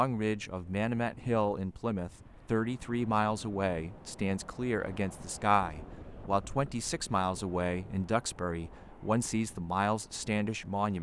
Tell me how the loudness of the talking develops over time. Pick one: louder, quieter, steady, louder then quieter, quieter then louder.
steady.